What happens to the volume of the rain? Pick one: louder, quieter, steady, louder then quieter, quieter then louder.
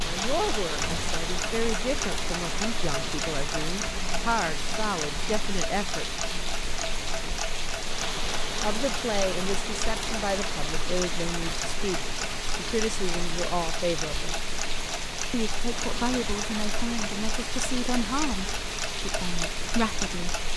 steady.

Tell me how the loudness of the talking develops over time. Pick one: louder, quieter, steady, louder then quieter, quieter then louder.
steady.